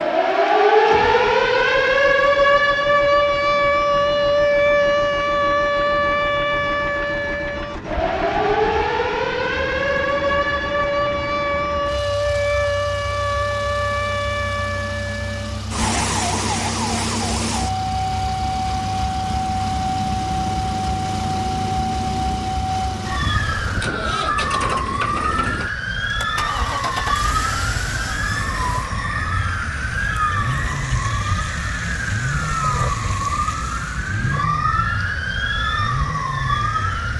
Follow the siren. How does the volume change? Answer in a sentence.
The loudness of the siren goes down.